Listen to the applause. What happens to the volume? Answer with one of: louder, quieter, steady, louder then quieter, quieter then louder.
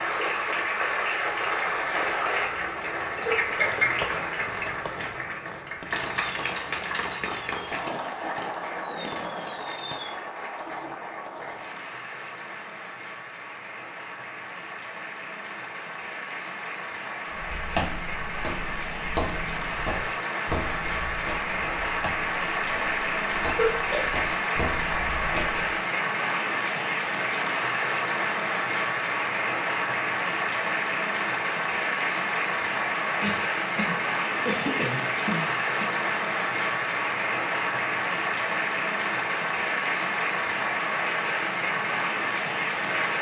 quieter then louder.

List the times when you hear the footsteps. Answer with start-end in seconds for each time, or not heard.
17.3-25.8.